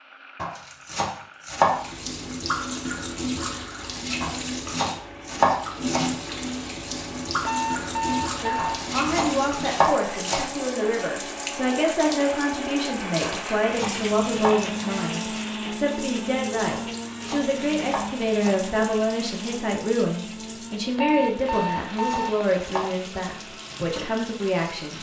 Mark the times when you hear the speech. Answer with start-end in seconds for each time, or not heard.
8.4-24.9.